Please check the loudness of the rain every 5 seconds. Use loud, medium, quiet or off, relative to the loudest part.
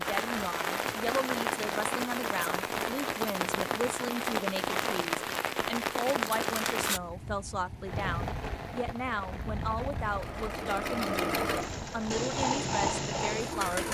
loud, loud, medium.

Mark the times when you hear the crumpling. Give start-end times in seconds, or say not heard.
6.1-7.0.